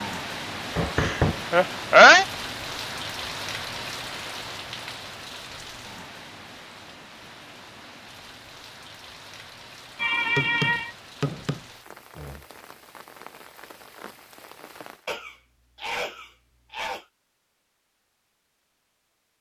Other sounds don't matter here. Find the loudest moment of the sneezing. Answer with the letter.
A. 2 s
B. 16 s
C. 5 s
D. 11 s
A.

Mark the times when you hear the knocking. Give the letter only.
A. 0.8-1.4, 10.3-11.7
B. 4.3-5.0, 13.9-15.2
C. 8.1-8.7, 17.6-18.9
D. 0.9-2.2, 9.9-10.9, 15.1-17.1
A.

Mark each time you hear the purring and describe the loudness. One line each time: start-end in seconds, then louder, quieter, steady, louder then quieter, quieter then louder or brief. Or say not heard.
not heard.